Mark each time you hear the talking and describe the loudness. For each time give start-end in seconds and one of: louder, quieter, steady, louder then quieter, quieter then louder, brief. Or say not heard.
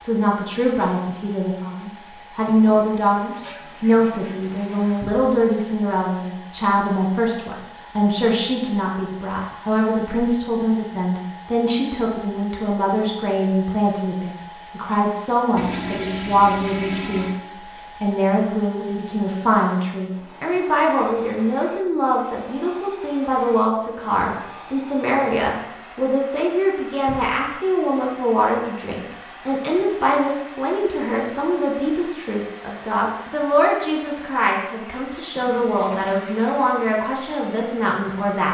0.0-38.4 steady.